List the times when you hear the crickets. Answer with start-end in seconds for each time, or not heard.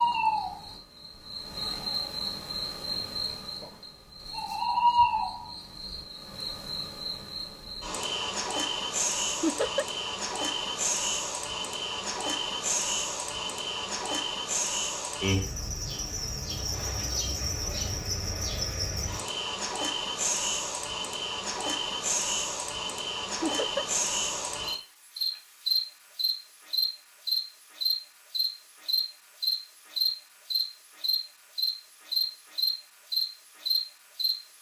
0.0-34.5.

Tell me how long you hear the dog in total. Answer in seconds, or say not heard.
not heard.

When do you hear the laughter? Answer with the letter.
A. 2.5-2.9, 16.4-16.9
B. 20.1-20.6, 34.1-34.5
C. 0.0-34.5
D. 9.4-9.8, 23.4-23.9
D.